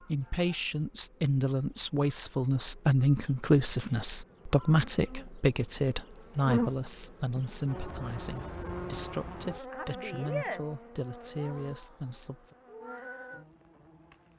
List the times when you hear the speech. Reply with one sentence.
You can hear the speech from 0.0 to 12.6 s.